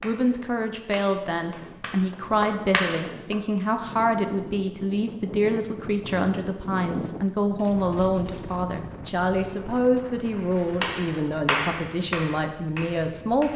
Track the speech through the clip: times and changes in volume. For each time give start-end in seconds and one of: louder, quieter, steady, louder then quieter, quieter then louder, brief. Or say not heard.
0.0-13.5 steady.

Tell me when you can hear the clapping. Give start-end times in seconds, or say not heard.
0.0-3.4, 10.8-13.5.